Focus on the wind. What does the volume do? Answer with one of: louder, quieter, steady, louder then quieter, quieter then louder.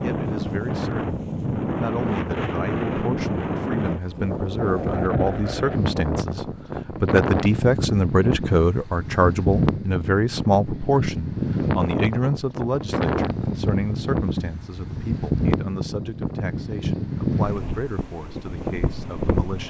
steady.